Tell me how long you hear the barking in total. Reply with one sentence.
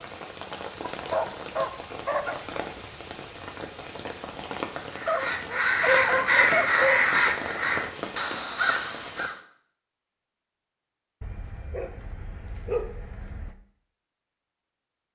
The barking can be heard for 6 seconds in total.